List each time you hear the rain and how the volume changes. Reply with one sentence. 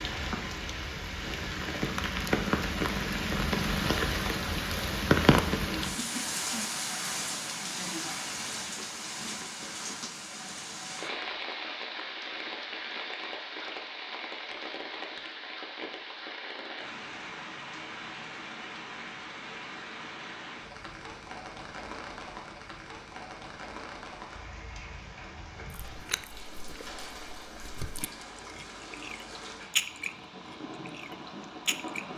You can hear the rain from 0.0 to 32.1 s, getting quieter.